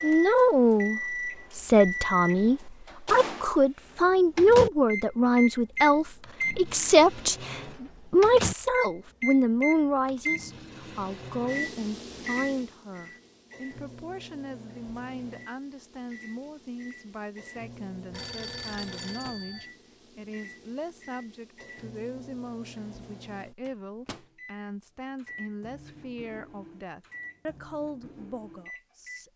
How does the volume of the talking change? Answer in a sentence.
The volume of the talking goes down.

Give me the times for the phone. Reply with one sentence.
You can hear the phone from 18.1 to 19.7 s.